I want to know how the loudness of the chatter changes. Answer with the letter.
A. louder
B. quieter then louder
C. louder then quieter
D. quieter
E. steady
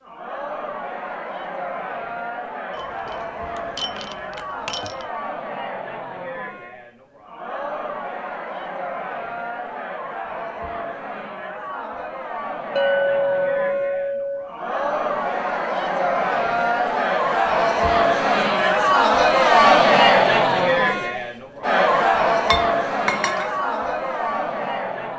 A.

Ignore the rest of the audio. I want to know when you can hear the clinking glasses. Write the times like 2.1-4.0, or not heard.
2.8-5.0, 12.8-14.6, 22.4-23.5.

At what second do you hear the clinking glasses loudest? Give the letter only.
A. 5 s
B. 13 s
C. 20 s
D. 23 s
B.